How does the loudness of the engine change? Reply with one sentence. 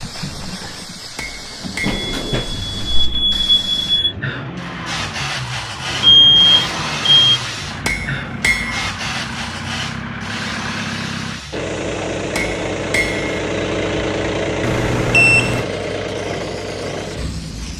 The volume of the engine goes up.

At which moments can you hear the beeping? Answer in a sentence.
You can hear the beeping from 1.8 to 4.2 s, from 6.0 to 7.4 s and from 14.6 to 15.7 s.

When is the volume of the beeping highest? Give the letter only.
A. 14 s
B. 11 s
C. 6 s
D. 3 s
C.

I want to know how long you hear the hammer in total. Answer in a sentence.
The hammer can be heard for 3 seconds in total.